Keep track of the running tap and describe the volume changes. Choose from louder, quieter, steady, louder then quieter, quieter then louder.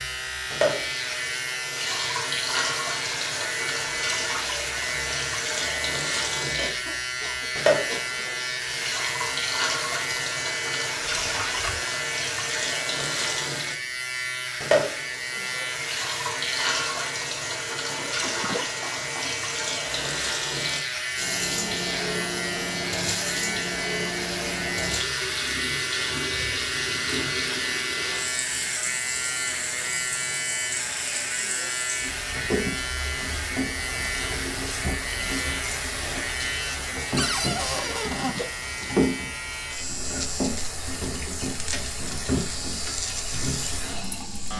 steady.